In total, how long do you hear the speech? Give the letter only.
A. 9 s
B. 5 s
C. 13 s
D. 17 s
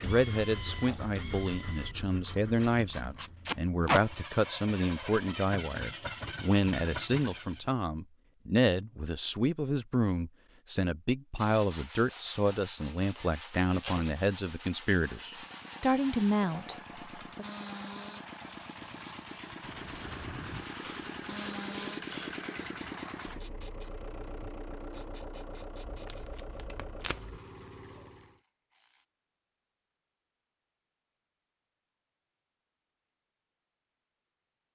D.